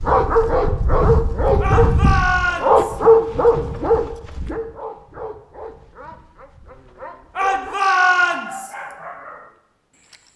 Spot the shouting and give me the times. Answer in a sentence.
You can hear the shouting from 1.6 to 3.0 s and from 7.3 to 8.7 s.